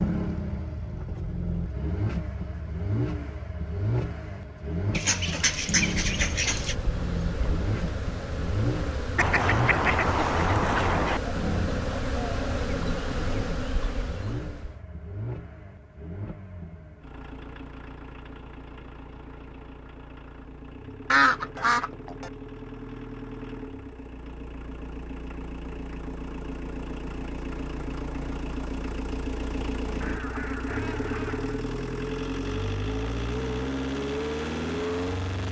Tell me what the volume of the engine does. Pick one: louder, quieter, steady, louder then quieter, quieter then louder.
quieter then louder.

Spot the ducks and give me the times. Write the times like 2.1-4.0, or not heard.
4.9-6.8, 9.2-11.2, 21.1-22.3, 30.0-31.6.